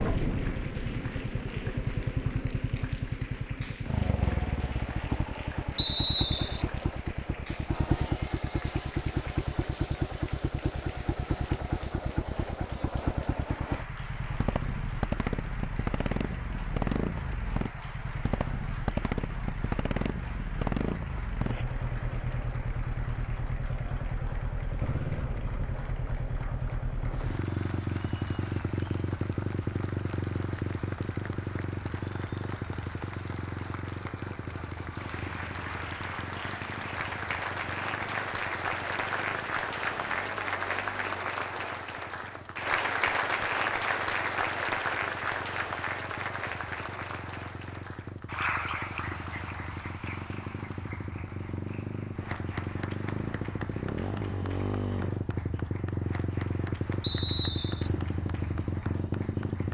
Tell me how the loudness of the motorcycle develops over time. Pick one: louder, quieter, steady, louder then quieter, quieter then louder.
quieter then louder.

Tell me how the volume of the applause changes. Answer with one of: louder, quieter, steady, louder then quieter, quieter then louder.
louder then quieter.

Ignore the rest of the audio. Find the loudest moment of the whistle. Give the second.
6 s.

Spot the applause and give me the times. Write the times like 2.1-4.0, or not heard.
0.0-59.6.